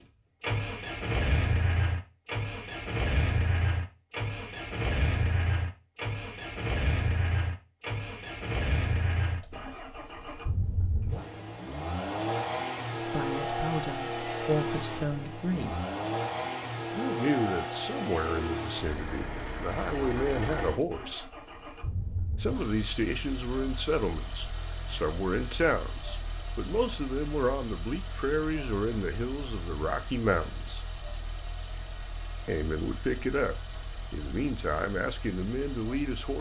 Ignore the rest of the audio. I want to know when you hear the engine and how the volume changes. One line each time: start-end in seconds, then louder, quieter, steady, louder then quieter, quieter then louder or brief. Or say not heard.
0.4-36.3 quieter.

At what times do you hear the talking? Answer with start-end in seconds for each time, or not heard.
12.9-15.8, 16.9-21.3, 22.4-30.8, 32.5-36.3.